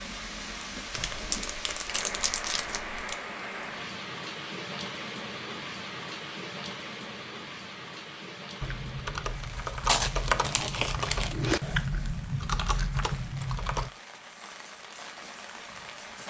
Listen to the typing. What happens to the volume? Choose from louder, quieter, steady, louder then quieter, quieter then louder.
steady.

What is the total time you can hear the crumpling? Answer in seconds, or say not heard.
4 s.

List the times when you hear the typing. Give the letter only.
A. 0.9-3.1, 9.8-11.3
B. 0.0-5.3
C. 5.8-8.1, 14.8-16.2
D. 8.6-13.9
D.